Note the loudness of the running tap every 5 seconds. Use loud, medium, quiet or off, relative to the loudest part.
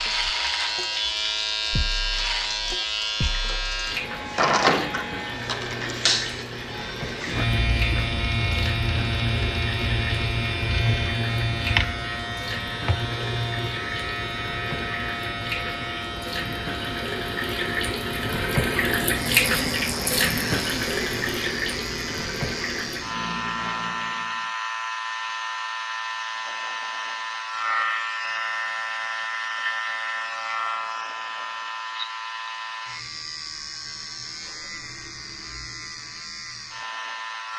medium, medium, medium, loud, loud, off, off, off.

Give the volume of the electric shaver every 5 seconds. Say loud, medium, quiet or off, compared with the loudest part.
loud, loud, loud, medium, medium, loud, medium, medium.